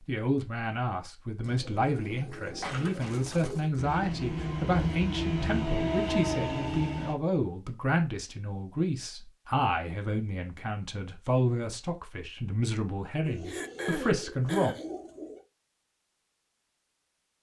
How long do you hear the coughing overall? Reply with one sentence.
The coughing can be heard for 2 seconds in total.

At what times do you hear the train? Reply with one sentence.
You can hear the train from 3.8 to 7.2 s.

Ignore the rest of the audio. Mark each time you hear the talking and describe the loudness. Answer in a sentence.
You can hear the talking from 0.1 to 14.8 s, at a steady volume.